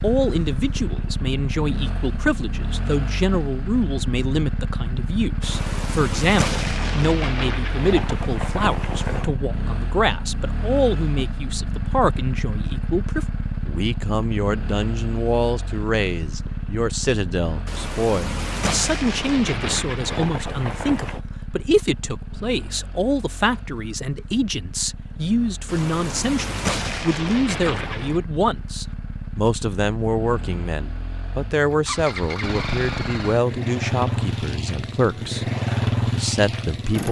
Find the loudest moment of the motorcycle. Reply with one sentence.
The volume of the motorcycle peaks at 36 seconds.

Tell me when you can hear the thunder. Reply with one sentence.
The thunder can be heard from 5.4 to 9.3 s, from 17.6 to 21.2 s and from 25.6 to 28.2 s.